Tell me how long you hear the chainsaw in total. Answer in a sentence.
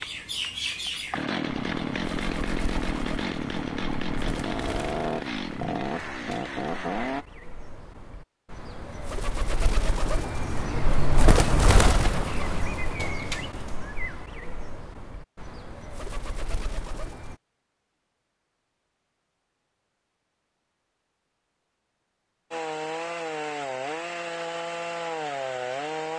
The chainsaw can be heard for 11 seconds in total.